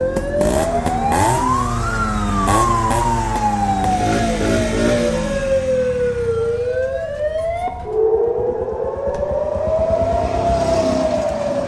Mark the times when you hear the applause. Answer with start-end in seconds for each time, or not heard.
not heard.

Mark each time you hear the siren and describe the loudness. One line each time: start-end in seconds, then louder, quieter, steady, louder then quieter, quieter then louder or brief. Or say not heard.
0.0-11.6 steady.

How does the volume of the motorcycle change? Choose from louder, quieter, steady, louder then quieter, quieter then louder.
quieter then louder.